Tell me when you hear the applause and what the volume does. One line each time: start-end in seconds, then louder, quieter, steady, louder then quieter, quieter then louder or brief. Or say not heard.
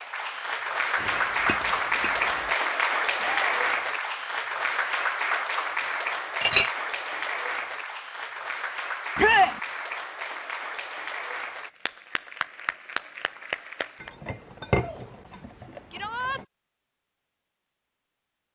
0.0-14.1 quieter.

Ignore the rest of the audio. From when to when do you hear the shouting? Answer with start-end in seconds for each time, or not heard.
3.2-3.8, 9.2-9.6, 15.9-16.4.